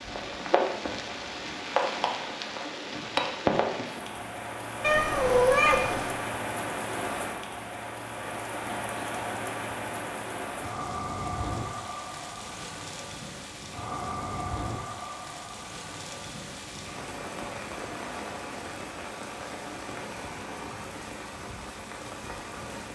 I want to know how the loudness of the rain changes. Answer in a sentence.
The volume of the rain goes down.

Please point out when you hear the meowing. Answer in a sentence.
The meowing can be heard from 4.8 to 6.2 s.